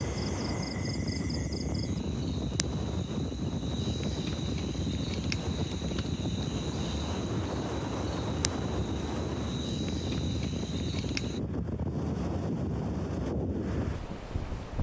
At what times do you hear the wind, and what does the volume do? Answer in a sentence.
The wind can be heard from 0.0 to 14.7 s, at a steady volume.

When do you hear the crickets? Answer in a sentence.
You can hear the crickets from 0.0 to 11.4 s.